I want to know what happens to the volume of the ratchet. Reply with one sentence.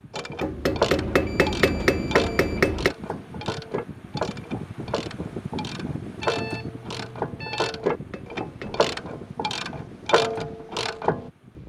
The loudness of the ratchet goes down, then up.